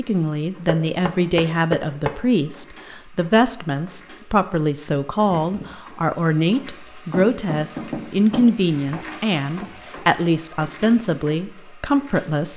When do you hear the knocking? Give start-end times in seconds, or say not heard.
0.7-2.2, 7.1-8.5.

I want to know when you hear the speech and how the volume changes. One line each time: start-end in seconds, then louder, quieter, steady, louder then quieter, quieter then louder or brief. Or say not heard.
0.0-12.5 steady.